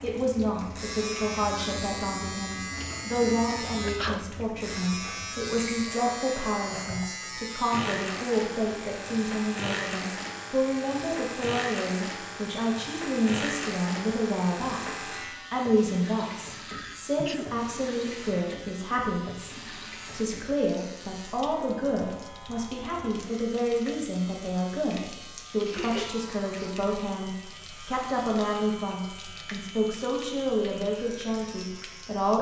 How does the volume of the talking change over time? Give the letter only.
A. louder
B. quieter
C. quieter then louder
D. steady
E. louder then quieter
D.